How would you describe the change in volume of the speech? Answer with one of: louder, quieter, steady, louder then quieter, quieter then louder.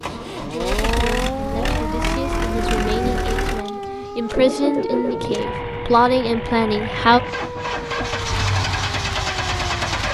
louder.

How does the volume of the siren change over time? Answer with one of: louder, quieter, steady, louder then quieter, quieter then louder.
quieter.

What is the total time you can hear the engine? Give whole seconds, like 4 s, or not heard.
10 s.